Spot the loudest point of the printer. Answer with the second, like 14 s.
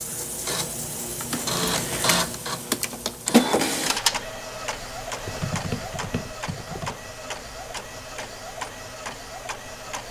4 s.